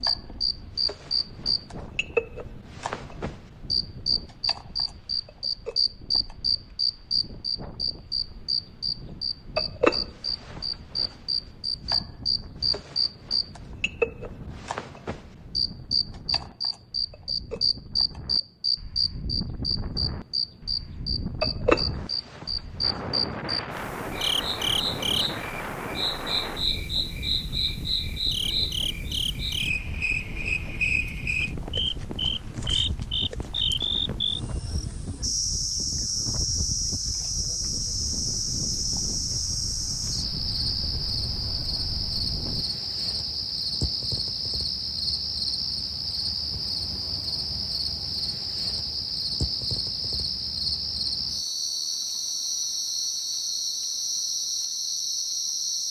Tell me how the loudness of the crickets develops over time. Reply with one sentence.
The volume of the crickets stays about the same.